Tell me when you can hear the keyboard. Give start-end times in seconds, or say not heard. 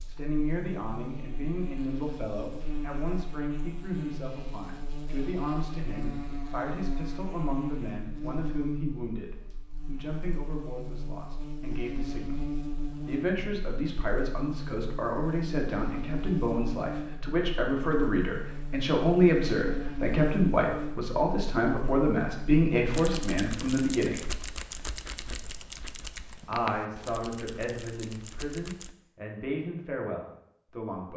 22.9-28.9.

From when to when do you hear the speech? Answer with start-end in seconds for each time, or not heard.
0.1-12.4, 13.0-24.2, 26.4-31.1.